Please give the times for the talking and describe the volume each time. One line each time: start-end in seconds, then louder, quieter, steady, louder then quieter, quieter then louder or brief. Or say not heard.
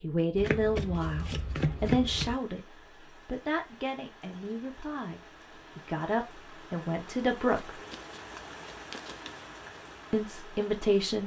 0.0-7.7 quieter then louder
10.1-11.2 brief.